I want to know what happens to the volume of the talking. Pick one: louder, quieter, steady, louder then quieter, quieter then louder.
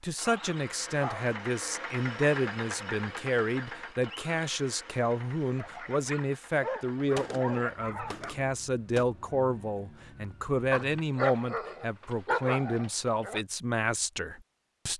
steady.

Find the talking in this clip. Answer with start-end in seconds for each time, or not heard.
0.0-14.9.